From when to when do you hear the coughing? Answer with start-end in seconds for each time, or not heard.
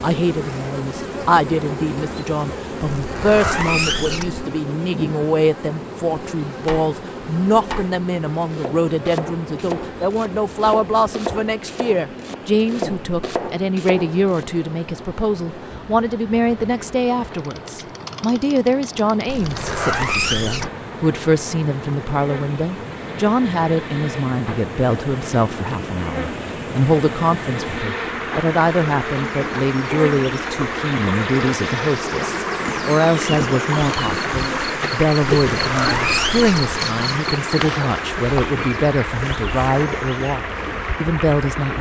not heard.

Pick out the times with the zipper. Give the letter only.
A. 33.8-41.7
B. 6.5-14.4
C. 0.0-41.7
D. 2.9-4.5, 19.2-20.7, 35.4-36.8
D.